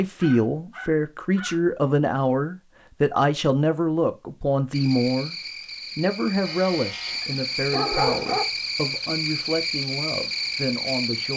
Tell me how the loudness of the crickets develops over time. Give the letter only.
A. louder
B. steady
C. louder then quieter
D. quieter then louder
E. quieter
A.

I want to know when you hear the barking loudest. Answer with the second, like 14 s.
8 s.